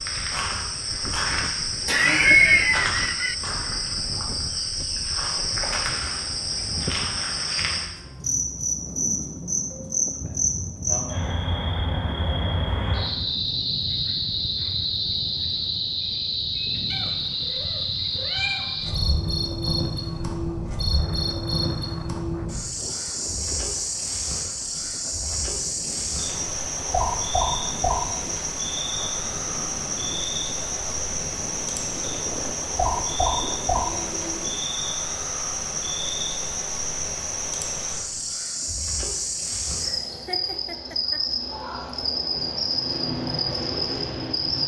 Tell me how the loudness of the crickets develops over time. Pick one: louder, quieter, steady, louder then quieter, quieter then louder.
steady.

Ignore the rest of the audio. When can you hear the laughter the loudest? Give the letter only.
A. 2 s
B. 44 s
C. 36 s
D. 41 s
A.